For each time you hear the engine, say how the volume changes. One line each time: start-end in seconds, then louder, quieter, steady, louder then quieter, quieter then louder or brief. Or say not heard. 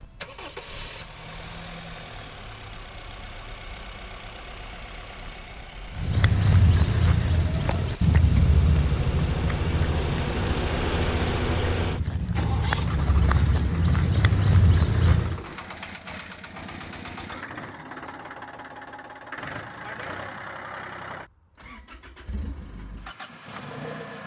0.0-24.2 louder then quieter.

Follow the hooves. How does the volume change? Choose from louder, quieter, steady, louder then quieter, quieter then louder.
quieter then louder.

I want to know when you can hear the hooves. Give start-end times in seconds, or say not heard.
5.9-15.4.